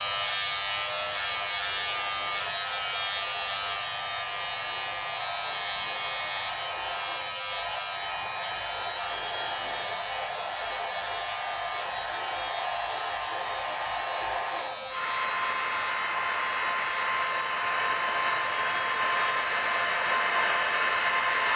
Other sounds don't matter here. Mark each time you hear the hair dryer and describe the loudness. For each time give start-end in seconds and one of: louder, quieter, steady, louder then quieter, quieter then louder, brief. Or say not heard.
0.0-21.5 louder.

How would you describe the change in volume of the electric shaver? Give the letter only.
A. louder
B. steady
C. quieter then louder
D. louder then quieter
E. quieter
E.